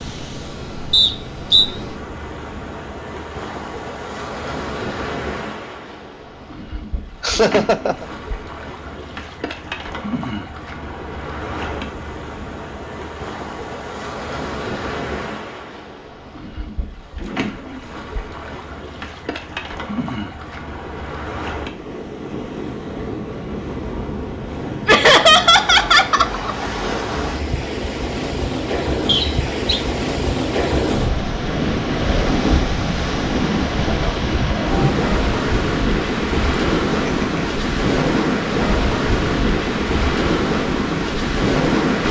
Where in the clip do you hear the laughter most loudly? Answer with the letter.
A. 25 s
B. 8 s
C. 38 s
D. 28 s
A.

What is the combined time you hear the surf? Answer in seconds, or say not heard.
42 s.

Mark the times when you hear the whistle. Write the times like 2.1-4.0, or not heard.
0.9-1.7, 29.1-29.8.